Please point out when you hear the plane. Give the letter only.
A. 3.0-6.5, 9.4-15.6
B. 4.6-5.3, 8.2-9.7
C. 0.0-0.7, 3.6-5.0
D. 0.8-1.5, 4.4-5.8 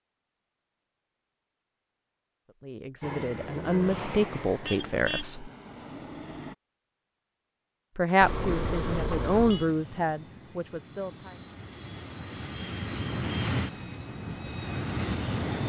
A.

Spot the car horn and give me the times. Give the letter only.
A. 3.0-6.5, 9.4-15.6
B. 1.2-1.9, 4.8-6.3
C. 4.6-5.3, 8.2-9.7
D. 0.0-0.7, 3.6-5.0
C.